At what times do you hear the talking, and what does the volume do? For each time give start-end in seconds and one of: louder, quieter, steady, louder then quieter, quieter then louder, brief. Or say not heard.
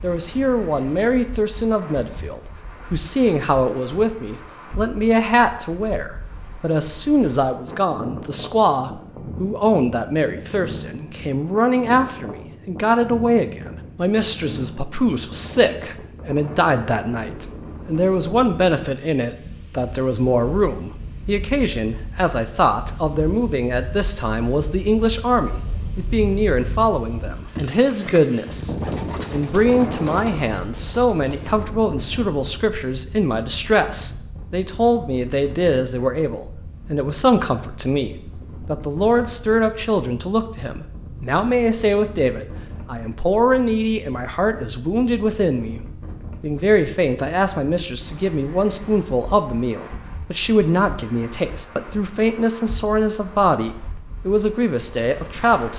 0.0-45.8 steady
46.4-55.7 steady.